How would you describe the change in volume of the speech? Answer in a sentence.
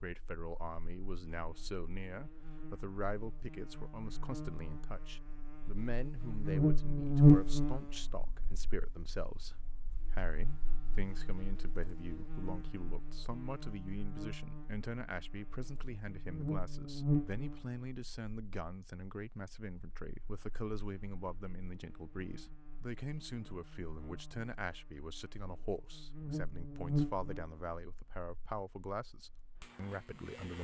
The loudness of the speech stays about the same.